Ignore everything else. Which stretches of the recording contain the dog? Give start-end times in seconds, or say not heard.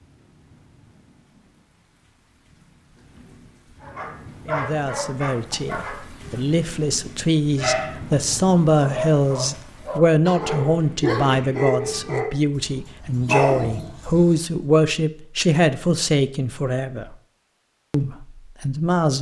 3.8-14.3.